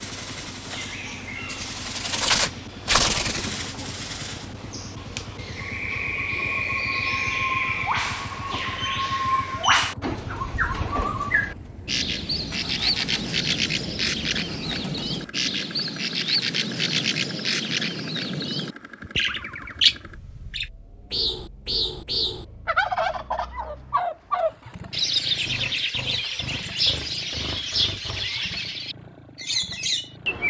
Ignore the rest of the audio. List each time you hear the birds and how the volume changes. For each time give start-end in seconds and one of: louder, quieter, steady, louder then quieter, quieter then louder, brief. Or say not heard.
0.0-30.4 steady.